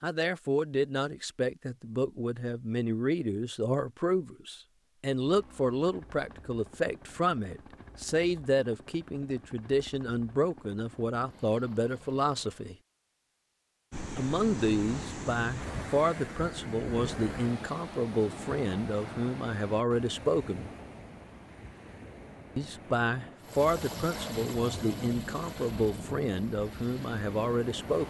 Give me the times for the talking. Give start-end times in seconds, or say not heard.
0.0-12.8, 14.2-20.7, 22.6-28.0.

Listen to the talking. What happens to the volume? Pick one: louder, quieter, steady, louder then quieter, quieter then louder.
steady.